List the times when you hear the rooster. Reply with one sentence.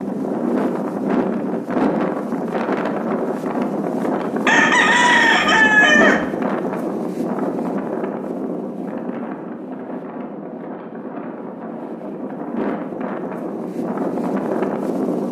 You can hear the rooster from 4.5 to 6.2 s.